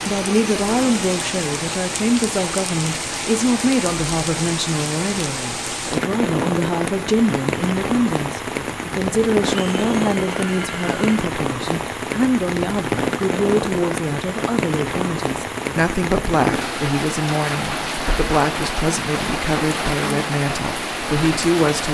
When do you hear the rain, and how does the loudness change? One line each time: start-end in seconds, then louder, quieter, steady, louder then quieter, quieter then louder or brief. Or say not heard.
0.0-21.8 steady.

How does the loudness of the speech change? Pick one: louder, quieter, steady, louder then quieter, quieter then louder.
steady.